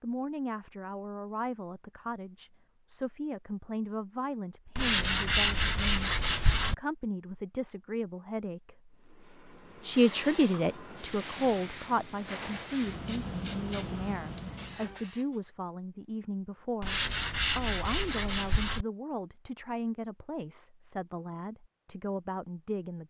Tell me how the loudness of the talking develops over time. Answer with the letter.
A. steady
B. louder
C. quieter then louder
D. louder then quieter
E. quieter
D.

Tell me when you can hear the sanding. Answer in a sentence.
You can hear the sanding from 4.8 to 6.8 s and from 16.8 to 18.9 s.